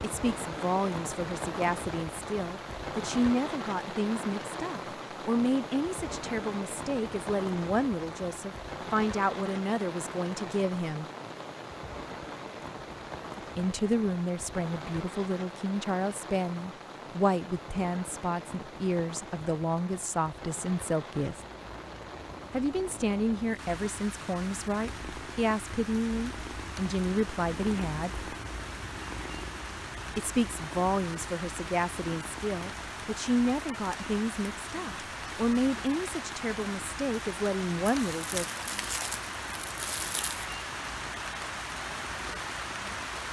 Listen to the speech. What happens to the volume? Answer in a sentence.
The volume of the speech stays about the same.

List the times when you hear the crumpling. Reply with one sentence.
You can hear the crumpling from 37.9 to 40.5 s.